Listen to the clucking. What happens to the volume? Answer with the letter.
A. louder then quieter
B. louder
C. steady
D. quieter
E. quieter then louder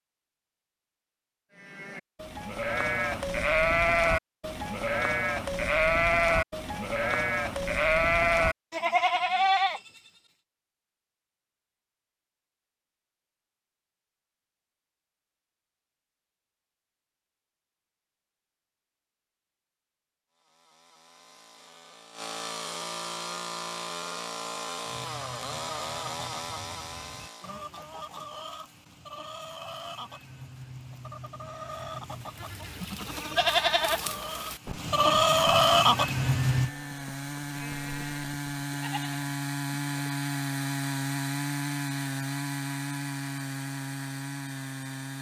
B.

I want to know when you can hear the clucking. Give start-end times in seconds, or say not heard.
24.9-36.7.